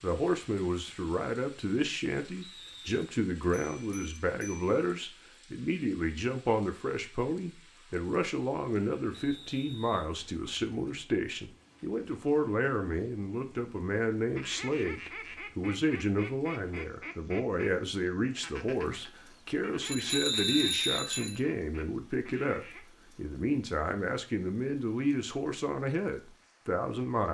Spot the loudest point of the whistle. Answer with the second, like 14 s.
21 s.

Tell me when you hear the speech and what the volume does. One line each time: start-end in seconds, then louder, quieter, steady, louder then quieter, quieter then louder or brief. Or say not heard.
0.0-27.2 steady.